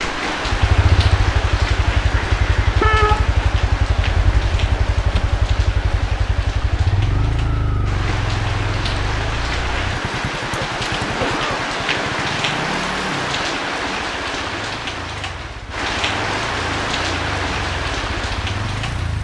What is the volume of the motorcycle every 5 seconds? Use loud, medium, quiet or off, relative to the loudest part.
loud, loud, medium, medium.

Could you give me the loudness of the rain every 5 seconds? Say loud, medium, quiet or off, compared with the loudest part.
loud, medium, loud, loud.